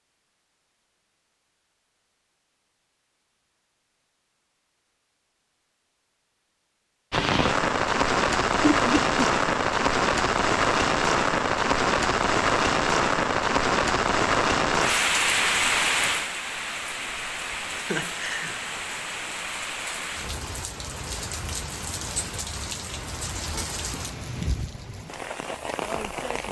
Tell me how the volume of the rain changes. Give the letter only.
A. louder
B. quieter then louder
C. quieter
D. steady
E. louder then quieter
C.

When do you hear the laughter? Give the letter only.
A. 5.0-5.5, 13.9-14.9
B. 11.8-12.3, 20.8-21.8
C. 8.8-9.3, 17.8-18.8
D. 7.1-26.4
C.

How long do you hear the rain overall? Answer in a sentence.
You can hear the rain for 19 seconds altogether.